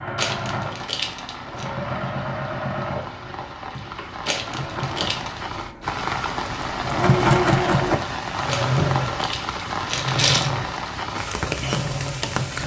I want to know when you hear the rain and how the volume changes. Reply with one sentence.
You can hear the rain from 0.2 to 12.6 s, getting louder.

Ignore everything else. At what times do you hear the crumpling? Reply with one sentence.
You can hear the crumpling from 0.1 to 1.6 s, from 4.2 to 5.4 s and from 8.4 to 10.5 s.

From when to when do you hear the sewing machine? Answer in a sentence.
You can hear the sewing machine from 0.0 to 12.6 s.